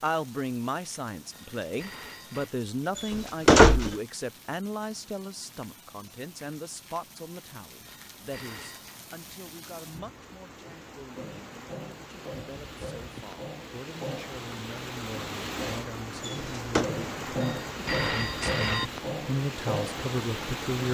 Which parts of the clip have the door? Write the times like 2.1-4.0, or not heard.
3.0-4.0, 16.2-16.9.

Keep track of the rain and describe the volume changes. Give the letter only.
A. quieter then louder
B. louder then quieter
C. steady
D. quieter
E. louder
E.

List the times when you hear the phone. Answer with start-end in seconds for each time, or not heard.
1.3-2.5, 7.8-9.0, 17.4-18.9.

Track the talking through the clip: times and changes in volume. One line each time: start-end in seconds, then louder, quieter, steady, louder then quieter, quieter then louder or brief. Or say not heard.
0.0-20.8 quieter then louder.